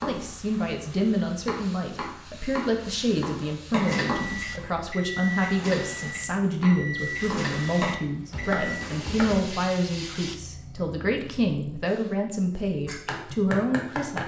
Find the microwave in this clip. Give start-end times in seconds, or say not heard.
3.8-8.7.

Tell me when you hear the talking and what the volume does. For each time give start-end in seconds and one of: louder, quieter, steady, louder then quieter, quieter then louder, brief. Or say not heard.
0.1-14.2 steady.